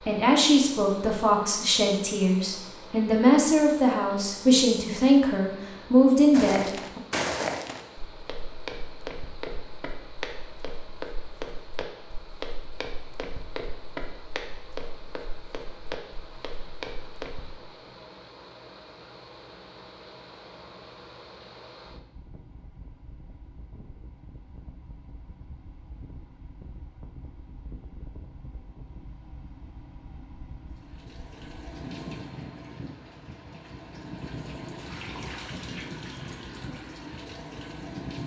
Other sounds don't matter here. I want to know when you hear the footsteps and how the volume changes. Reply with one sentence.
You can hear the footsteps from 6.3 to 17.6 s, getting quieter.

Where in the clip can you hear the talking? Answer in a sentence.
The talking can be heard from 0.1 to 7.0 s.